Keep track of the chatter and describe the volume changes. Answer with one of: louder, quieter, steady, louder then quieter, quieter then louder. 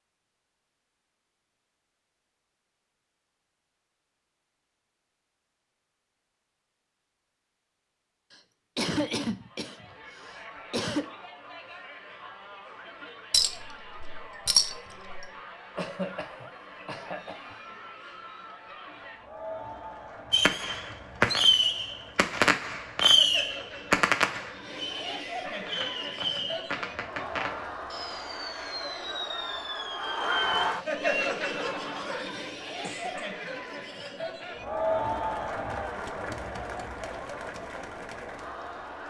louder.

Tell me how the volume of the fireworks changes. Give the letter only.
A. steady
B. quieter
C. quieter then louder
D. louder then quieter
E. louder
B.